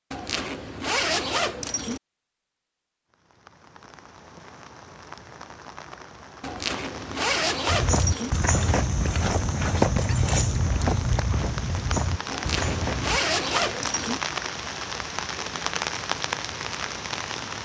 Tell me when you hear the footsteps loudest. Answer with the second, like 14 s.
10 s.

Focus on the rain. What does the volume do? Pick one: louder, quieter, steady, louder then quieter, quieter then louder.
louder.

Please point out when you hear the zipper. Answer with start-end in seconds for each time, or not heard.
0.1-2.0, 6.4-8.3, 12.3-14.2.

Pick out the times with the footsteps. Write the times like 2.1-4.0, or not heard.
7.7-13.2.